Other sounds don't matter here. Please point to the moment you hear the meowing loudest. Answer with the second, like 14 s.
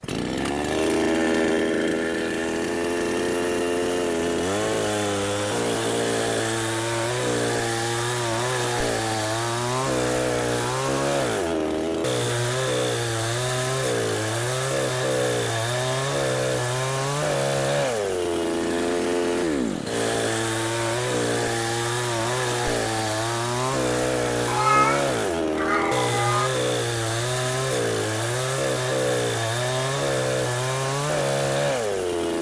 25 s.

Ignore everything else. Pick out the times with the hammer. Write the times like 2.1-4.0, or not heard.
not heard.